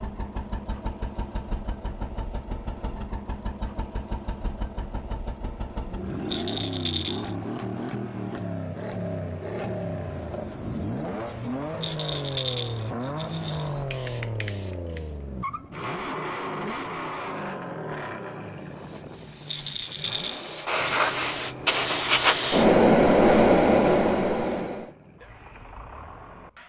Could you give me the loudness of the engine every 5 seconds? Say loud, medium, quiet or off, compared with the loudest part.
medium, loud, loud, loud, medium, quiet.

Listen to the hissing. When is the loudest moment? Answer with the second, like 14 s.
23 s.